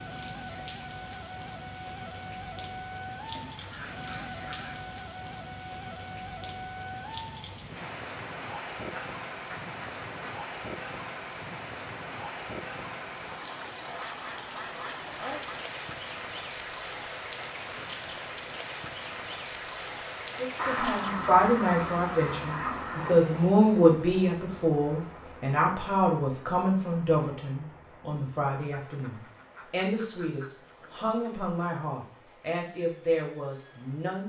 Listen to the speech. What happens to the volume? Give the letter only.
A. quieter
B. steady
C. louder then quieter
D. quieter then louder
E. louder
A.